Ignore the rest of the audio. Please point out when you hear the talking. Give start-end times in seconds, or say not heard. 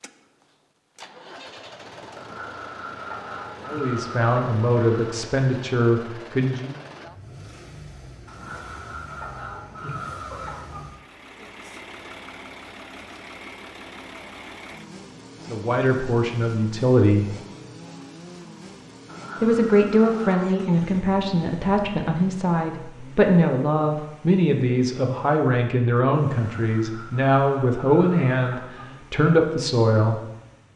3.6-6.8, 15.4-17.4, 19.4-30.2.